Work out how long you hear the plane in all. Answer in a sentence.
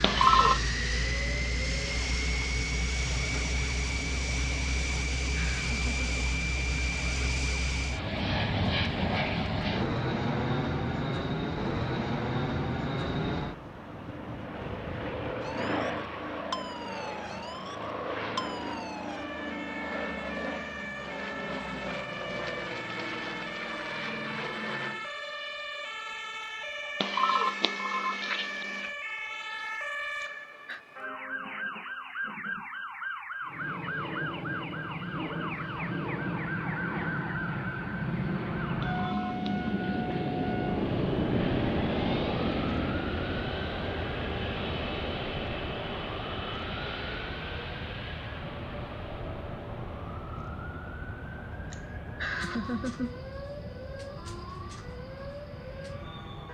You can hear the plane for 48 seconds altogether.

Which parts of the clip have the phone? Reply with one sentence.
The phone can be heard from 0.0 to 0.7 s, from 27.0 to 28.9 s and from 38.8 to 39.8 s.